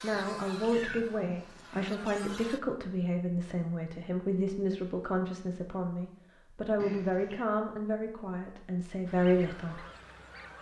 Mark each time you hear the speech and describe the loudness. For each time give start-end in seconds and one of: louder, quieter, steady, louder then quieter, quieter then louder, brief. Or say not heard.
0.0-9.8 steady.